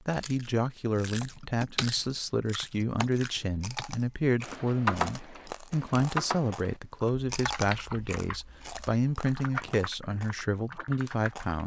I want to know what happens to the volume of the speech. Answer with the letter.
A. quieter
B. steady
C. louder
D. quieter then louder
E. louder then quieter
B.